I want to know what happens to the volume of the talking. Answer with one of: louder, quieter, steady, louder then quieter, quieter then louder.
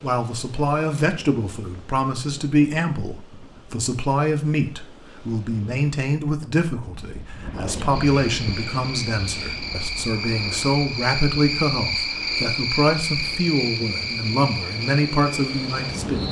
steady.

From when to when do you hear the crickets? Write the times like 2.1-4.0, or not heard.
7.8-16.2.